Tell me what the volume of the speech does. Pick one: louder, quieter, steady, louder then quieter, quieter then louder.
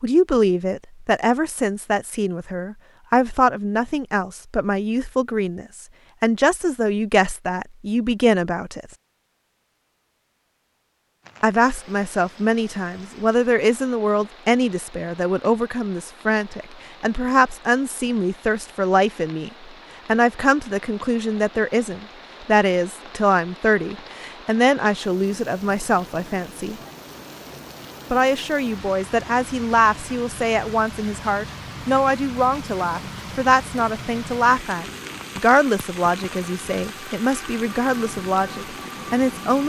steady.